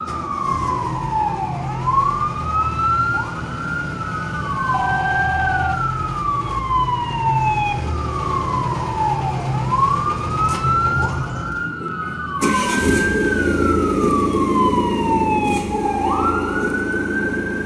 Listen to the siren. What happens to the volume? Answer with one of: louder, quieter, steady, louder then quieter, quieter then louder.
steady.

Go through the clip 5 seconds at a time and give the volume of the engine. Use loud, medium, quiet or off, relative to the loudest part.
medium, medium, loud, loud.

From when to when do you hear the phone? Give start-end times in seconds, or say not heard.
4.7-5.8.